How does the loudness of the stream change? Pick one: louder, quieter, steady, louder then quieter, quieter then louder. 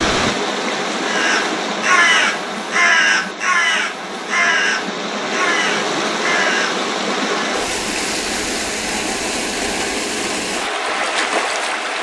quieter then louder.